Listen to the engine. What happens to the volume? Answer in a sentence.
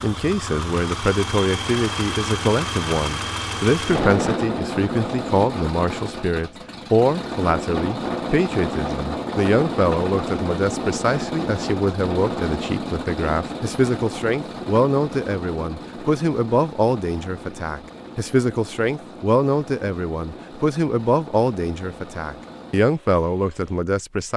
The loudness of the engine goes down.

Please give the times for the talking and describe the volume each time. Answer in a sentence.
The talking can be heard from 0.0 to 24.3 s, at a steady volume.